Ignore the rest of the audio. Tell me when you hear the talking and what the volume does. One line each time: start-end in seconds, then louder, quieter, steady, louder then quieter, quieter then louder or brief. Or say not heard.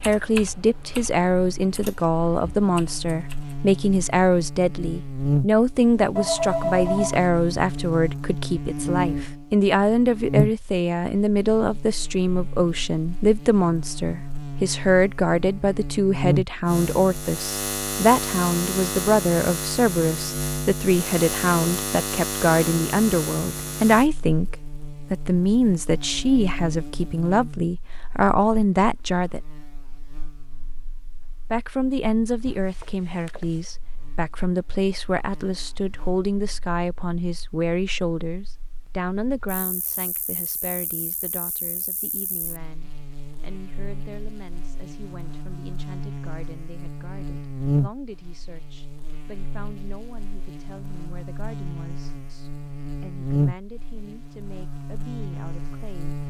0.0-29.4 steady
31.5-56.1 quieter.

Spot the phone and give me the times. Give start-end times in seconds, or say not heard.
6.2-7.2, 32.5-33.8.